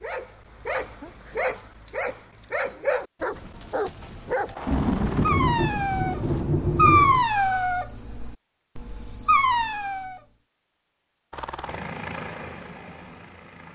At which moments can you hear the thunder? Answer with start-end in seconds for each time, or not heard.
4.7-7.3.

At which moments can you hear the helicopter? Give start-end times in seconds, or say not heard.
4.5-6.5, 11.3-13.7.